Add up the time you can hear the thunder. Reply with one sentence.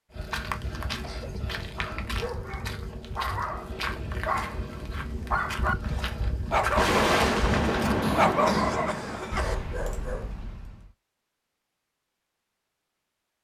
The thunder can be heard for 3 seconds in total.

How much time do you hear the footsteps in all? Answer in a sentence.
You can hear the footsteps for 8 seconds altogether.